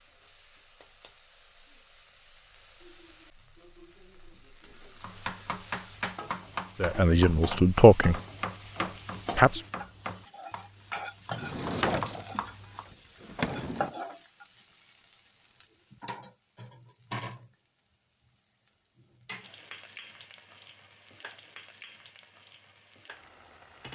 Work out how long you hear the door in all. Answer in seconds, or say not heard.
3 s.